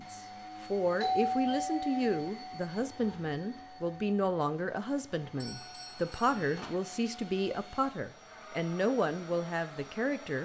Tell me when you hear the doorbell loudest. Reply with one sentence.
The volume of the doorbell peaks at 1 second.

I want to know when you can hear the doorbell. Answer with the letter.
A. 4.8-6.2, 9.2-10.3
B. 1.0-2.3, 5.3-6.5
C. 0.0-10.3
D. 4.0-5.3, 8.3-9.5
B.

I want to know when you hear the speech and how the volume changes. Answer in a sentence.
The speech can be heard from 0.0 to 10.3 s, at a steady volume.